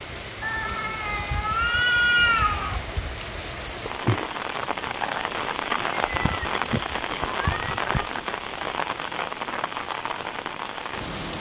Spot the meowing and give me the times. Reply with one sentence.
You can hear the meowing from 0.4 to 2.8 s and from 6.0 to 8.1 s.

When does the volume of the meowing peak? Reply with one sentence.
The loudest moment of the meowing is at 2 seconds.